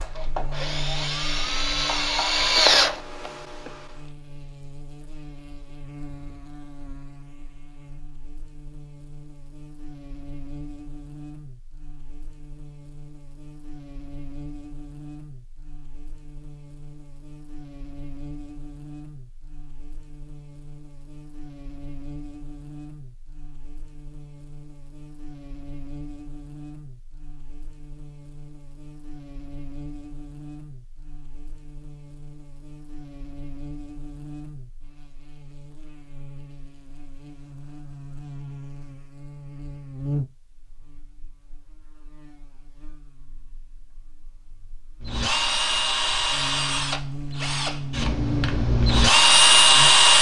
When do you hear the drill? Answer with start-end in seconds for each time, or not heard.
0.0-3.7, 45.0-50.1.